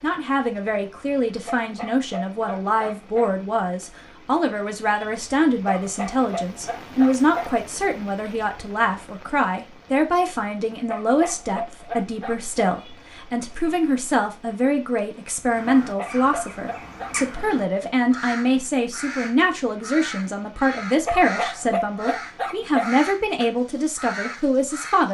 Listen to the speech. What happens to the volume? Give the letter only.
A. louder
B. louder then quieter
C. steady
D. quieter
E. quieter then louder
C.